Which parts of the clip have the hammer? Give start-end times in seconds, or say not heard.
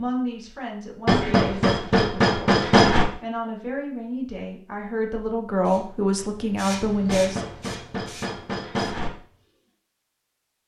1.1-3.0, 7.0-9.1.